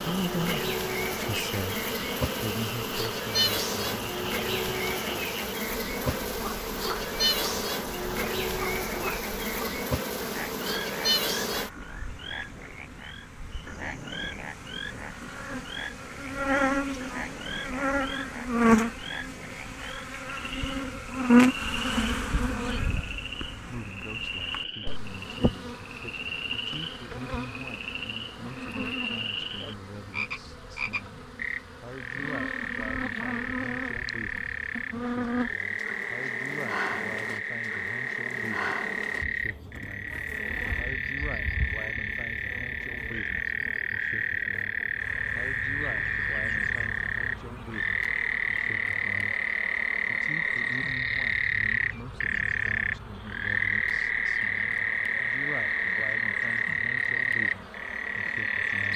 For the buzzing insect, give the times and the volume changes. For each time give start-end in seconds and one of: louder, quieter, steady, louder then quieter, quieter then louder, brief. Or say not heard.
0.0-58.9 quieter.